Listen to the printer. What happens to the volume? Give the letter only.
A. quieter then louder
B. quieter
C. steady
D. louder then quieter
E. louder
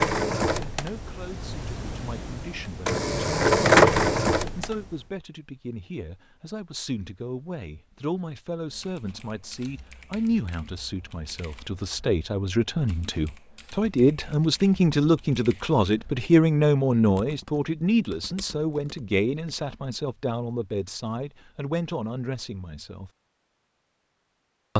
A.